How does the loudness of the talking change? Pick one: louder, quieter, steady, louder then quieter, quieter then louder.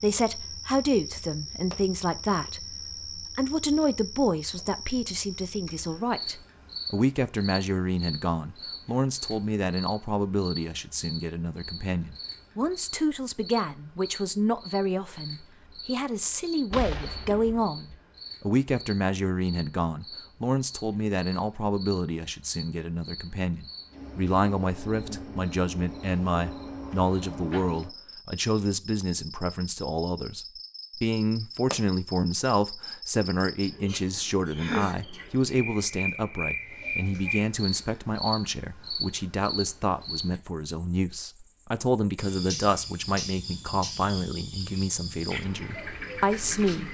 steady.